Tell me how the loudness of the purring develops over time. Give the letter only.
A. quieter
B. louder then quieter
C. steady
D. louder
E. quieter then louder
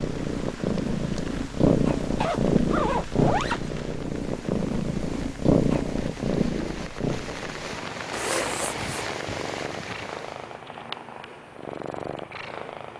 A.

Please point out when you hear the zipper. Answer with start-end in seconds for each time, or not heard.
2.2-3.6, 8.1-8.8.